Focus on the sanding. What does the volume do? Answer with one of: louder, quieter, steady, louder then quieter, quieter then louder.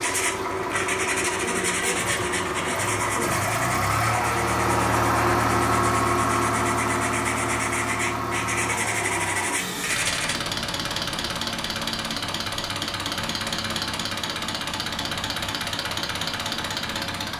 quieter then louder.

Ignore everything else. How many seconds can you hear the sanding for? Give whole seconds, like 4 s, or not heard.
10 s.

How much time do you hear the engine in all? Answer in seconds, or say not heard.
17 s.